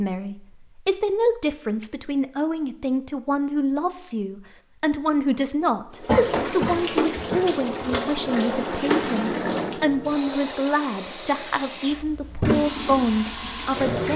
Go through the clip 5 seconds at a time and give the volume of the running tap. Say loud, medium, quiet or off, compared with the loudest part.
off, loud, loud.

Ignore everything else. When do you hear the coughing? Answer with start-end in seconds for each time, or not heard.
6.0-8.0.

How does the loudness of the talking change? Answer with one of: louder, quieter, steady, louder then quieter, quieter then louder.
steady.